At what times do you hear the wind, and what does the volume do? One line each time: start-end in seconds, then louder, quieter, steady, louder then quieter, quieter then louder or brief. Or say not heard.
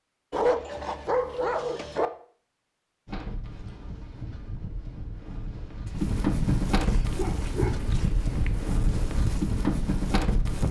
3.0-10.6 louder.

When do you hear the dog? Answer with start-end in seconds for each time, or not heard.
0.3-2.1, 5.8-8.5.